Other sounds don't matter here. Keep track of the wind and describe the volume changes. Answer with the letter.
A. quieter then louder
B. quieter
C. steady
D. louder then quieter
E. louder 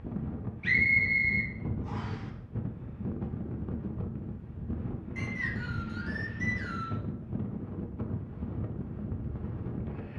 C.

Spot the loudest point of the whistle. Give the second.
1 s.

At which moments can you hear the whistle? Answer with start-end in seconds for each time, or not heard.
0.6-2.2, 5.2-7.0.